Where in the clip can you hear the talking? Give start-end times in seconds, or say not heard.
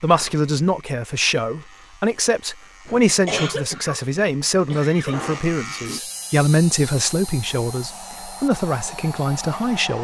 0.0-9.9.